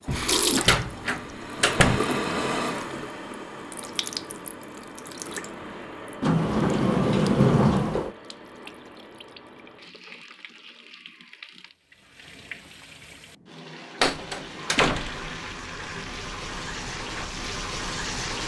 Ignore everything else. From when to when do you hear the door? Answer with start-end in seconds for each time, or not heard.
0.1-2.0, 6.2-8.1, 14.0-15.3.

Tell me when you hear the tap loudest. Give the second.
2 s.